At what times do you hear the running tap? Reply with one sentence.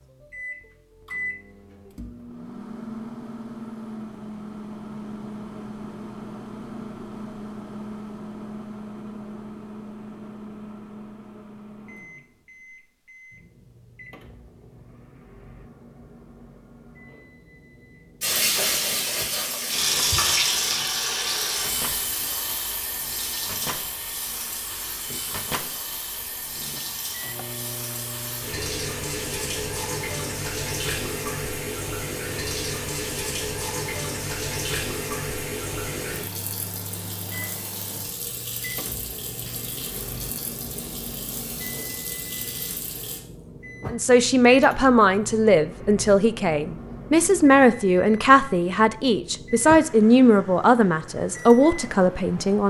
You can hear the running tap from 18.2 to 43.2 s.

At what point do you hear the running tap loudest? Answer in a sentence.
The loudest moment of the running tap is at 20 seconds.